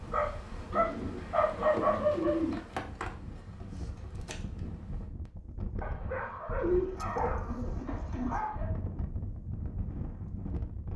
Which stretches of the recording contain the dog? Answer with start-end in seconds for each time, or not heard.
0.1-2.5, 5.8-8.7.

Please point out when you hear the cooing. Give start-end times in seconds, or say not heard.
0.7-2.6, 6.6-8.4.